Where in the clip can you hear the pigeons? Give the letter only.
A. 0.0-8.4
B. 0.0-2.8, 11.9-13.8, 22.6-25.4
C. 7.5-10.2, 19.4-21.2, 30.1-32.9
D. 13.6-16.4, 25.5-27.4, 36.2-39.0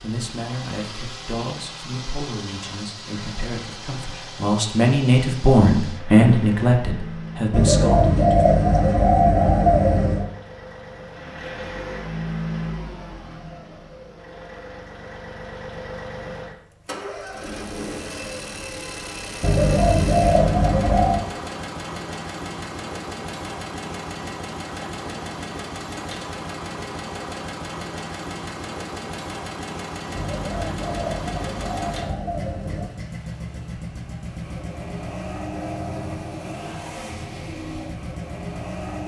C.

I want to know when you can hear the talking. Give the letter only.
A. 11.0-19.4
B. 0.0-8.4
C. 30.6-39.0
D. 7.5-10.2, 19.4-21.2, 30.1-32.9
B.